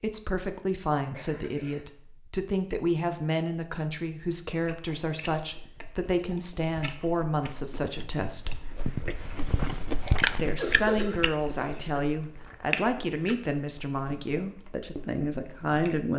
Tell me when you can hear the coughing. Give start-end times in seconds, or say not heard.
1.1-1.9, 10.0-12.0.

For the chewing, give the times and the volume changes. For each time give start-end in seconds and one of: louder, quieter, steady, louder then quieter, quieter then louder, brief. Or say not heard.
4.6-16.1 louder then quieter.